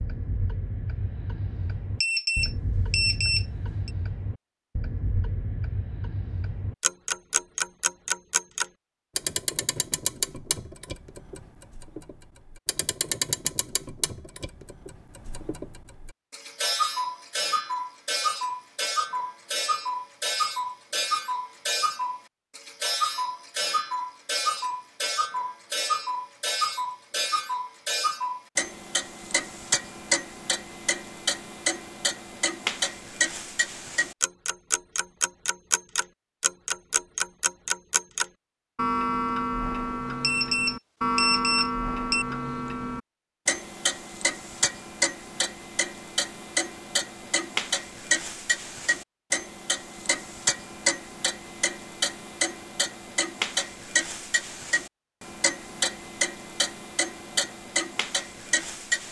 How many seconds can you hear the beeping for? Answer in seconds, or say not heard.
4 s.